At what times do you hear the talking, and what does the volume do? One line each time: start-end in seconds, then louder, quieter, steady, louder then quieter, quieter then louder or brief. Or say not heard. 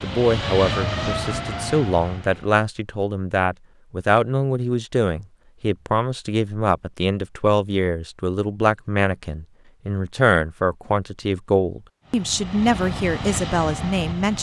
0.0-14.3 steady.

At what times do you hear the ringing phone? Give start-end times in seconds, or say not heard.
not heard.